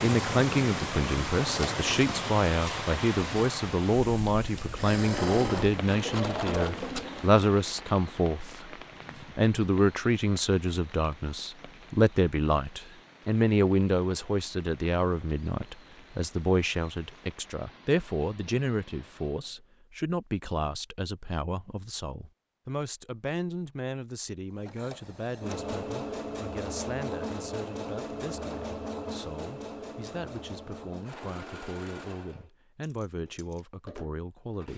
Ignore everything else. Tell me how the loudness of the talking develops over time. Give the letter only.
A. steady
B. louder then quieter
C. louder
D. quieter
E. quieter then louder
D.